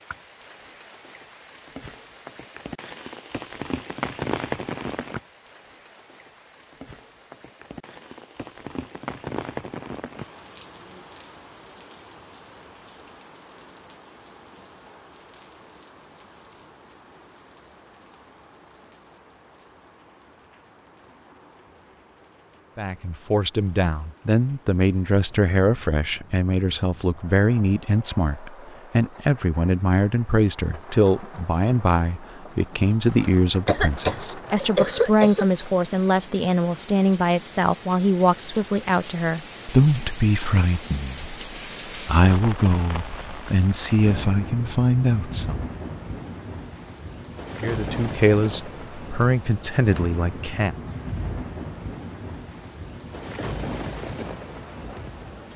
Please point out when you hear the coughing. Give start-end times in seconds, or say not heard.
33.6-35.5.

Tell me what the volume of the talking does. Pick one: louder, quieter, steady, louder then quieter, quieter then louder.
steady.